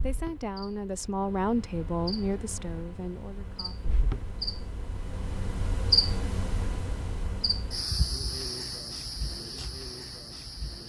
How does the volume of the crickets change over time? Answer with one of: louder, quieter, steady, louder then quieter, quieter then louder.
louder then quieter.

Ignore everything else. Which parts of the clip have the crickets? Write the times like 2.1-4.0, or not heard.
0.0-10.8.